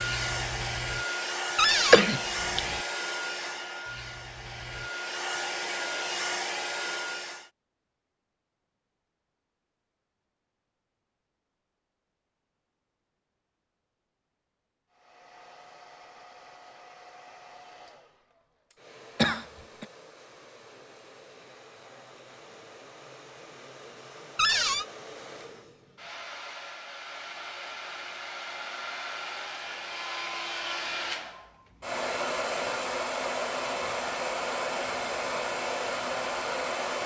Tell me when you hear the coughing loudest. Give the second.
2 s.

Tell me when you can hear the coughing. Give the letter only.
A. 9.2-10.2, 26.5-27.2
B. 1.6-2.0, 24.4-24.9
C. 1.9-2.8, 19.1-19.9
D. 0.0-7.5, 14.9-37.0
C.